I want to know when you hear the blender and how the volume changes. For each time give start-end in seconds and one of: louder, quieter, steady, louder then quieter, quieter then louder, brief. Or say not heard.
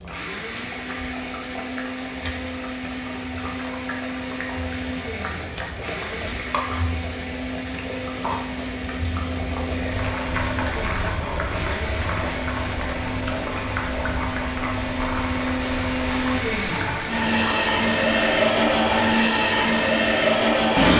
0.0-20.9 louder.